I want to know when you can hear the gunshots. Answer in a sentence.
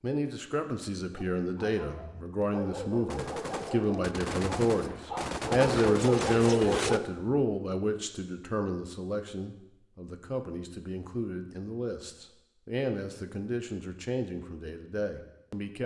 The gunshots can be heard from 3.0 to 7.0 s.